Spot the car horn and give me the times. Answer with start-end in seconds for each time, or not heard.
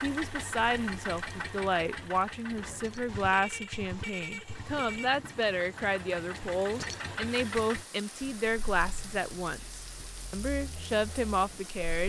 3.0-5.1.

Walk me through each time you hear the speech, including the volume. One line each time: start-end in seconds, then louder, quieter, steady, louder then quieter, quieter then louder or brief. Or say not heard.
0.0-12.0 steady.